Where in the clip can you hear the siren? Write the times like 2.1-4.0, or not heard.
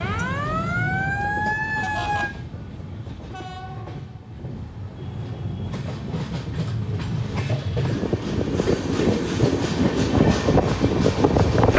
0.0-2.3.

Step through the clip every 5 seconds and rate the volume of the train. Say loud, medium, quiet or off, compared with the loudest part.
quiet, medium, loud.